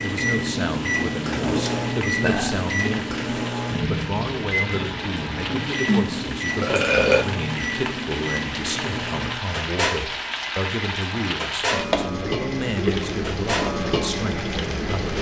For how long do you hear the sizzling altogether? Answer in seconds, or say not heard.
15 s.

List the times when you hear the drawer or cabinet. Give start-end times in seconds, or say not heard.
1.2-2.0.